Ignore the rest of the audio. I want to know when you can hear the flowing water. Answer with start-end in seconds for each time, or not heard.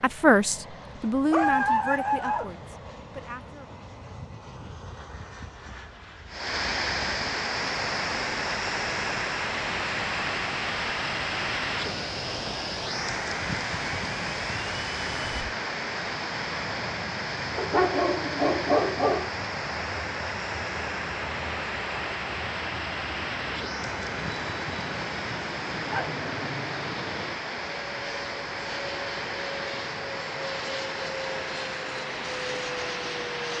6.2-33.5.